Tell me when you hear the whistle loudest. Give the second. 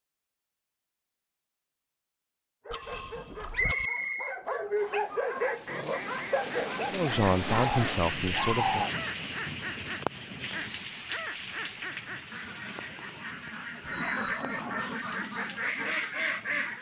4 s.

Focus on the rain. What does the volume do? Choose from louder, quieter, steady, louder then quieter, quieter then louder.
quieter.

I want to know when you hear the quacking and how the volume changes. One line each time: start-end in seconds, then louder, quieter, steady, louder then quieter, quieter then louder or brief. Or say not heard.
5.4-16.7 louder.